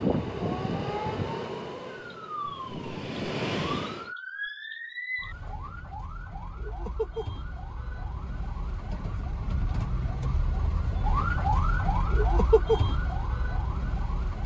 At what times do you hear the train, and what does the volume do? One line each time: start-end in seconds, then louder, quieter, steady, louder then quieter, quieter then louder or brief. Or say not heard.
0.0-4.1 quieter then louder.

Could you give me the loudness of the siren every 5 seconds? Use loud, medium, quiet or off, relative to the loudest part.
medium, medium, loud.